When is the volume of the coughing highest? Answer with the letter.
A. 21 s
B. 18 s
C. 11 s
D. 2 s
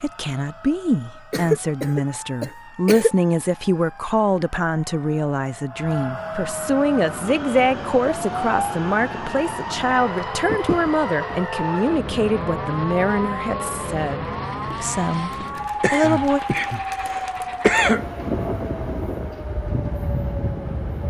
B.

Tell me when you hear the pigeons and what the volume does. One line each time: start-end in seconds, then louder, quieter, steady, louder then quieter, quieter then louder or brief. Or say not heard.
not heard.